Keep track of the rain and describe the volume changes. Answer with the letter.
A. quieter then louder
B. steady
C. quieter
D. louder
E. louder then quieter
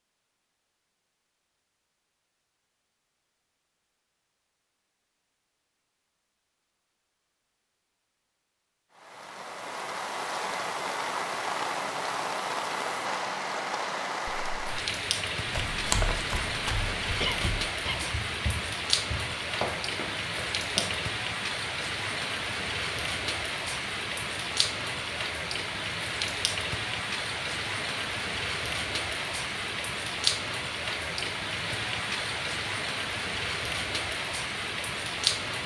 B.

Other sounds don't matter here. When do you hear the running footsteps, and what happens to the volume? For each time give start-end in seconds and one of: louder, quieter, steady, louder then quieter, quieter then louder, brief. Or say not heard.
15.4-20.9 quieter then louder.